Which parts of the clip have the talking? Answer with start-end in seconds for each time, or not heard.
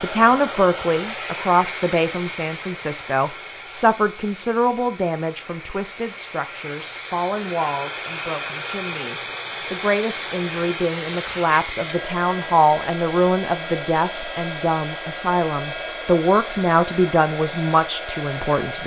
0.0-18.8.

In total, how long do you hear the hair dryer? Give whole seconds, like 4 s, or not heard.
19 s.